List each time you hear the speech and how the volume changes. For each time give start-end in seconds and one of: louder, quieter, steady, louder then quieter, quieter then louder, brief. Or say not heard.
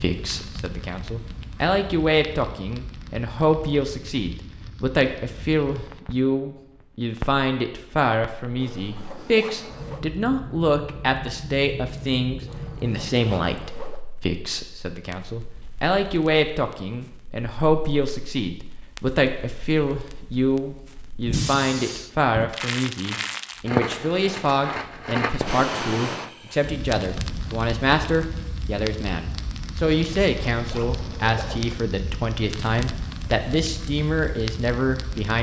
0.0-35.3 steady.